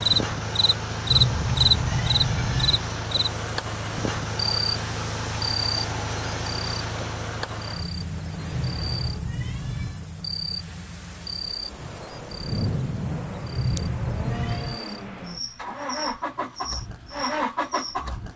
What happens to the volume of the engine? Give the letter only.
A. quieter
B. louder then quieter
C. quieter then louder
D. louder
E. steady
C.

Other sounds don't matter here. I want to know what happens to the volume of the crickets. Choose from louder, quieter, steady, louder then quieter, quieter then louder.
quieter.